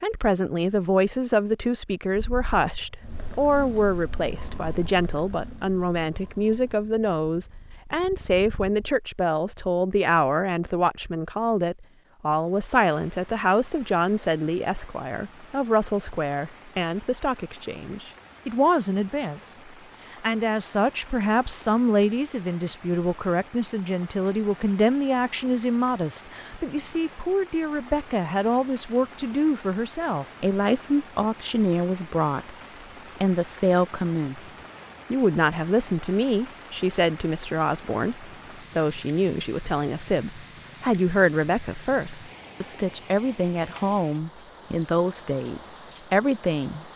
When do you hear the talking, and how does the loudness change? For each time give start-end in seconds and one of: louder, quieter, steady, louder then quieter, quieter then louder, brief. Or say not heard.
0.0-32.5 steady
33.2-46.9 steady.